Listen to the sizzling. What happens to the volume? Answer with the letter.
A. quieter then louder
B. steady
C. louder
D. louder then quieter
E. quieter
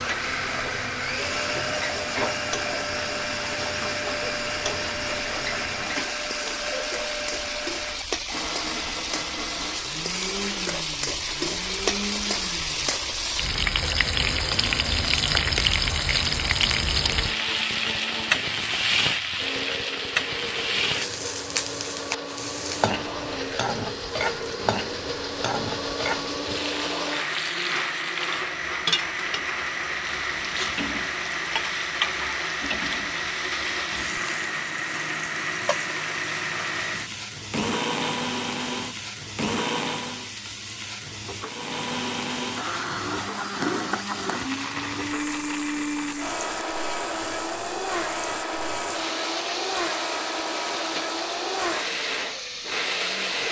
D.